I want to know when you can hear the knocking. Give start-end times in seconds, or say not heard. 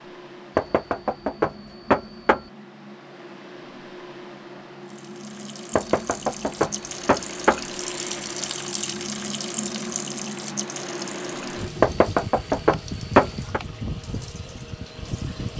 0.6-2.4, 5.8-7.6, 11.8-13.6.